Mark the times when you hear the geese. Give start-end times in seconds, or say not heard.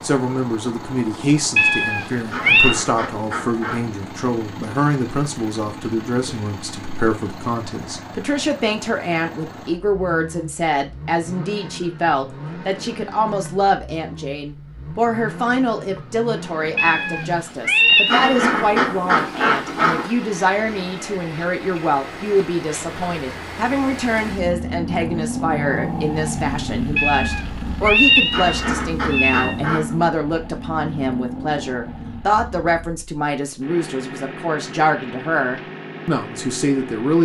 2.3-3.9, 18.1-20.1, 28.3-30.1.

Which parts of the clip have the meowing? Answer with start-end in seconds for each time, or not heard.
1.6-2.8, 16.8-18.4, 26.9-29.6.